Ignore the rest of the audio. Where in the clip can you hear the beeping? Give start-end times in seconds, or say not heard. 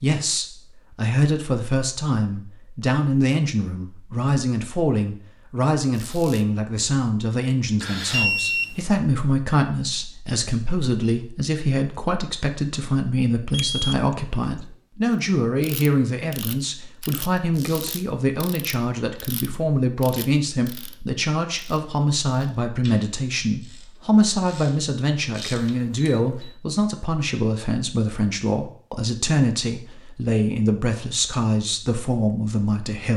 7.8-8.8, 13.5-13.9, 25.8-26.6.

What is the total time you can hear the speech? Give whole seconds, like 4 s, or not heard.
33 s.